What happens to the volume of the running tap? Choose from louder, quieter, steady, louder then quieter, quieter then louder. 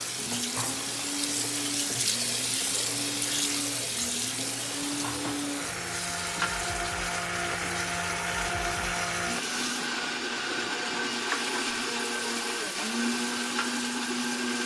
quieter.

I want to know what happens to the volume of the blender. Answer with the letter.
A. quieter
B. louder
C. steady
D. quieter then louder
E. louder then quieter
B.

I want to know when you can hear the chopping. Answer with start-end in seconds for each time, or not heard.
not heard.